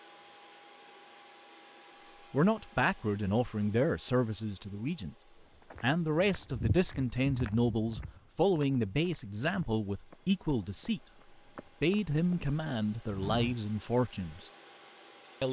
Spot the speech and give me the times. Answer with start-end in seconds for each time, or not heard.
2.3-5.2, 5.8-11.0, 11.8-14.4.